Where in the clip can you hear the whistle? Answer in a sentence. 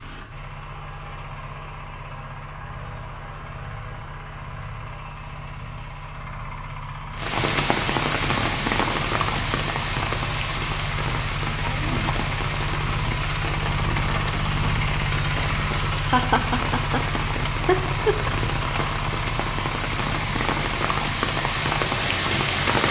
The whistle can't be heard in this clip.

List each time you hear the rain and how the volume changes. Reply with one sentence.
You can hear the rain from 7.2 to 22.8 s, getting quieter then louder.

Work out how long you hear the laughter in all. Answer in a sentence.
You can hear the laughter for 2 seconds altogether.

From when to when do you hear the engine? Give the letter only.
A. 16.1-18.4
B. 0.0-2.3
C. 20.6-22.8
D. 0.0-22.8
D.